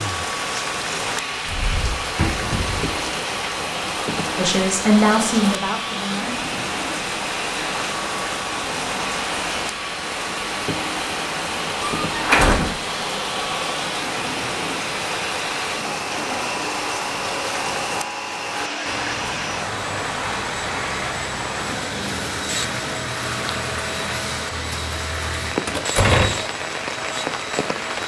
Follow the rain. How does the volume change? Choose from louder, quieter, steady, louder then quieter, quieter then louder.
steady.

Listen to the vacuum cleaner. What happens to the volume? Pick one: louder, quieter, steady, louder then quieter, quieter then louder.
steady.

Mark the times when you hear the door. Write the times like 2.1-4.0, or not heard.
1.4-3.0, 12.1-12.8, 25.6-26.4.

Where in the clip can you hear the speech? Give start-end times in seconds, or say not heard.
4.3-6.3.